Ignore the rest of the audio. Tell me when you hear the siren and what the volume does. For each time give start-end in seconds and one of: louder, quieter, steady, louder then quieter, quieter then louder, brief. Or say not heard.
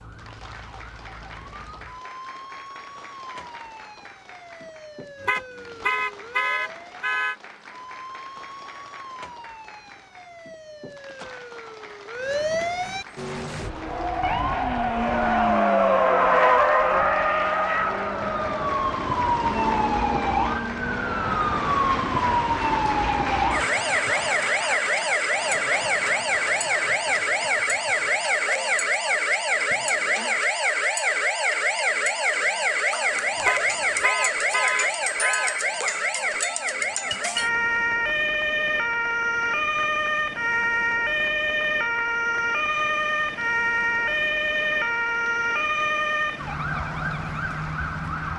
0.0-48.3 louder.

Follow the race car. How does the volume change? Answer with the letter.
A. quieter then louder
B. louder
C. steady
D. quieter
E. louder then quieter
E.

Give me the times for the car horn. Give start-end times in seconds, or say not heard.
5.2-7.3, 33.4-35.6.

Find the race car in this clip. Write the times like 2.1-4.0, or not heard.
13.2-22.3.